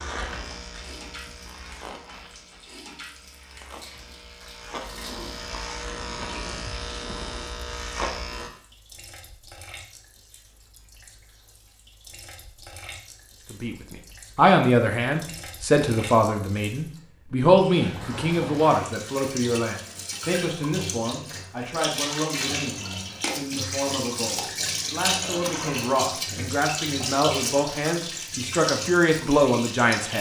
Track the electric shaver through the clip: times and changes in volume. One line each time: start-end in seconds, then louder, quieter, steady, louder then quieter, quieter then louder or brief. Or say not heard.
0.0-8.5 quieter then louder.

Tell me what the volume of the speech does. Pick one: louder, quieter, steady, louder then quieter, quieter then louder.
quieter then louder.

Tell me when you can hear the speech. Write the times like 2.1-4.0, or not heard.
13.5-30.1.